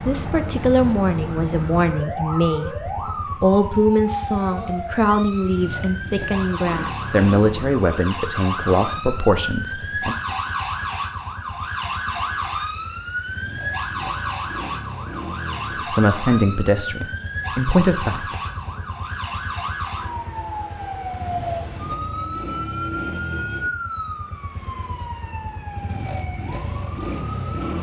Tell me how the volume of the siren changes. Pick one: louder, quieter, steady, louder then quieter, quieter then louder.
steady.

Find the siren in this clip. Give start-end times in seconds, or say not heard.
0.0-27.7.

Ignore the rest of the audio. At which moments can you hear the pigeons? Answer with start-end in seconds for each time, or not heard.
not heard.